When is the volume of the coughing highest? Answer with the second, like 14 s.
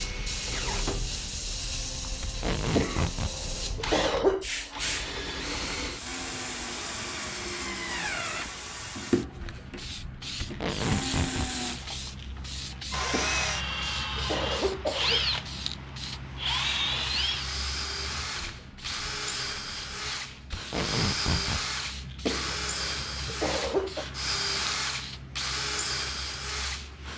4 s.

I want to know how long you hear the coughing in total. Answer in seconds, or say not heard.
7 s.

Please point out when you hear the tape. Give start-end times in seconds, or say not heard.
2.2-3.4, 10.4-11.6, 20.5-21.6.